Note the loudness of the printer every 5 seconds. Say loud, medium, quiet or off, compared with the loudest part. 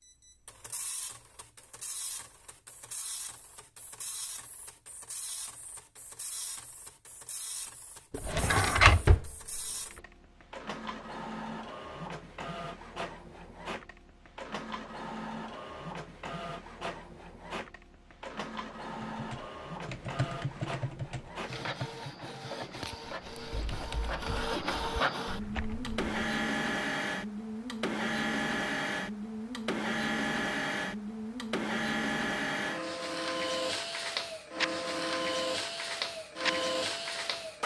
quiet, quiet, medium, medium, medium, loud, loud, loud.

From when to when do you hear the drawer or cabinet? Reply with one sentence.
The drawer or cabinet can be heard from 8.1 to 9.6 s.